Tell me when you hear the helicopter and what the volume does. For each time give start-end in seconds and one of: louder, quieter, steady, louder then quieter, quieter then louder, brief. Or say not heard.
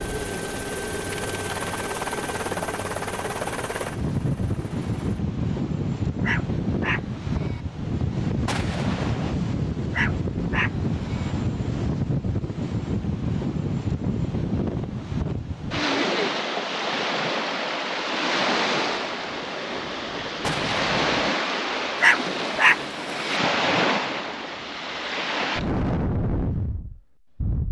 0.0-5.2 quieter.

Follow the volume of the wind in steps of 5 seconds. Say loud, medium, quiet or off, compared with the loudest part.
medium, loud, loud, loud, loud, loud.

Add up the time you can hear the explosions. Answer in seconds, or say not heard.
2 s.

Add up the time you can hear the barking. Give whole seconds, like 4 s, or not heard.
4 s.